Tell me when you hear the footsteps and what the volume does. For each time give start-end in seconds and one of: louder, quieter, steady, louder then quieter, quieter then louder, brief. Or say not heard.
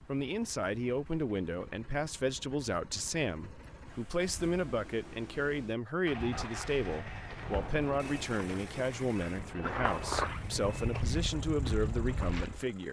6.1-12.7 louder.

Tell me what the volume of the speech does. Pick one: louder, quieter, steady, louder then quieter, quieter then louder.
steady.